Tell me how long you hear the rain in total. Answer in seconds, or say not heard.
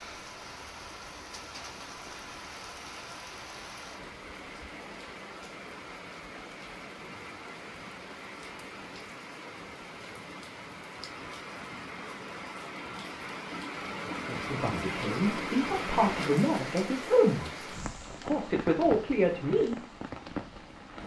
21 s.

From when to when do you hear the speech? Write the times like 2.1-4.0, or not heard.
14.2-19.8.